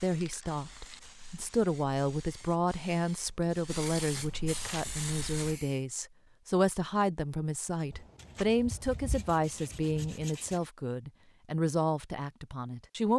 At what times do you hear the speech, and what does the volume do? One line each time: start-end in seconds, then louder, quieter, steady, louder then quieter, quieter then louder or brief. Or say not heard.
0.0-13.1 steady.